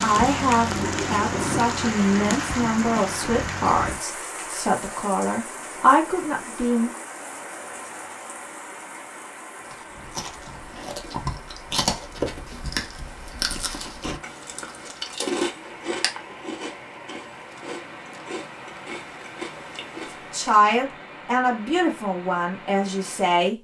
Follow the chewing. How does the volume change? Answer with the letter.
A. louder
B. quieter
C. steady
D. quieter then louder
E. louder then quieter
B.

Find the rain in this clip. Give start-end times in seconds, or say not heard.
0.0-23.5.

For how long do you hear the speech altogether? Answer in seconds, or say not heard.
10 s.